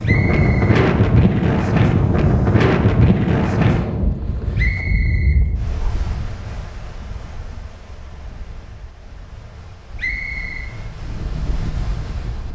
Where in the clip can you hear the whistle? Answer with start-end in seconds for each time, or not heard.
0.0-0.7, 4.5-6.2, 9.9-10.7.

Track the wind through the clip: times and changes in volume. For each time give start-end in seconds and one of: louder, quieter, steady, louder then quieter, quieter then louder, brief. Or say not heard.
0.0-12.4 quieter then louder.